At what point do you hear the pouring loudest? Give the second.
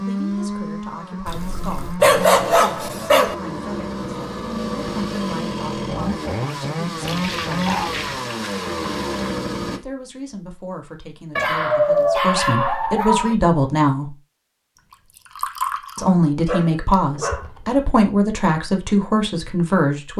16 s.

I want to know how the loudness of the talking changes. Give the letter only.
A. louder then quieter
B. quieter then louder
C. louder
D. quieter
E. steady
C.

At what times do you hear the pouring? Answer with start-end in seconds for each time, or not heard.
1.2-1.9, 7.0-9.4, 15.3-16.1.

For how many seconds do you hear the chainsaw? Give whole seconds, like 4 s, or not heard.
10 s.